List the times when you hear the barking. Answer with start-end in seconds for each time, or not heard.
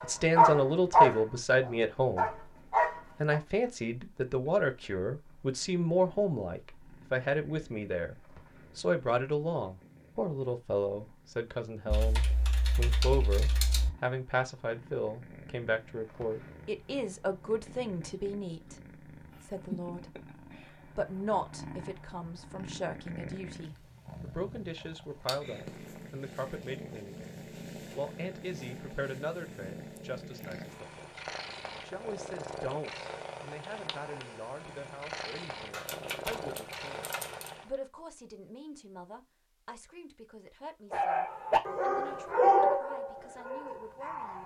0.0-3.4, 40.9-44.4.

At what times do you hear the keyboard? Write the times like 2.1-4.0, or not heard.
11.9-13.9, 35.7-37.5.